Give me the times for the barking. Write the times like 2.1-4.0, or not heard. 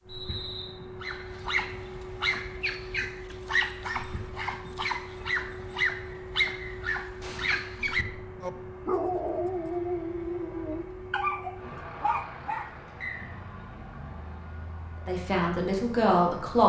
1.0-12.7.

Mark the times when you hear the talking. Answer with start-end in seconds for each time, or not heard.
15.1-16.6.